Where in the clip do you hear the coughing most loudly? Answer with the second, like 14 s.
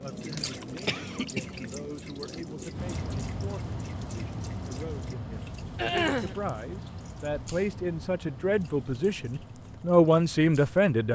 6 s.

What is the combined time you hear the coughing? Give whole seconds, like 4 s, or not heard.
2 s.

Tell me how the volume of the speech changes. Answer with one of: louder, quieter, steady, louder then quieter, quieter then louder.
louder.